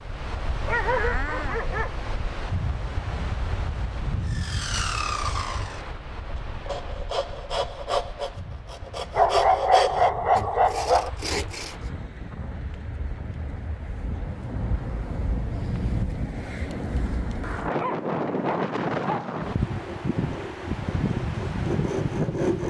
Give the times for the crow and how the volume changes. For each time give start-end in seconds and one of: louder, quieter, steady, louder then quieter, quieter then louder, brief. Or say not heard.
not heard.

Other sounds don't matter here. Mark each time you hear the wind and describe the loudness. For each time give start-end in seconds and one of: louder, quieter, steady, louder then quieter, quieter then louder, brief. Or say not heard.
0.0-22.6 quieter then louder.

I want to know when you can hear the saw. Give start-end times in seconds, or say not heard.
4.2-11.8, 19.6-22.6.